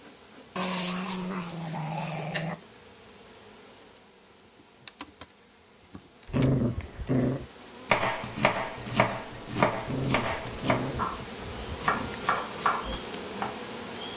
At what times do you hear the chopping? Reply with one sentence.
The chopping can be heard from 7.8 to 13.6 s.